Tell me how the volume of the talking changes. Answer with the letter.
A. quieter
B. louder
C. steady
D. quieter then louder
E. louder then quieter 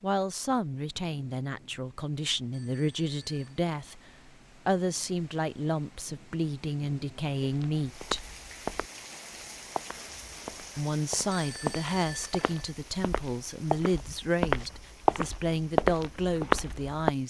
C.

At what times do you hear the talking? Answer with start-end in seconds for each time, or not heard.
0.0-8.3, 10.8-17.2.